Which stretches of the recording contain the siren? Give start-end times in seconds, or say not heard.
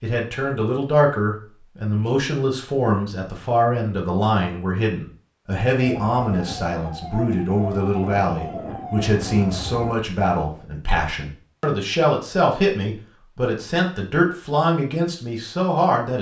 5.8-9.9.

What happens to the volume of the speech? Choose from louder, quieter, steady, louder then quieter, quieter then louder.
steady.